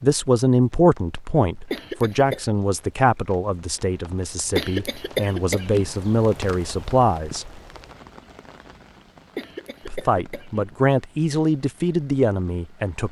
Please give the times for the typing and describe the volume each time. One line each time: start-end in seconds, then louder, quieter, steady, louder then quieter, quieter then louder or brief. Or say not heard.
not heard.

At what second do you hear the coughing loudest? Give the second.
5 s.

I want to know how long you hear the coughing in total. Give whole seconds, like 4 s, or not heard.
3 s.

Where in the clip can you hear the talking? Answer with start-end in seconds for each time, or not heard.
0.0-7.5, 9.8-13.0.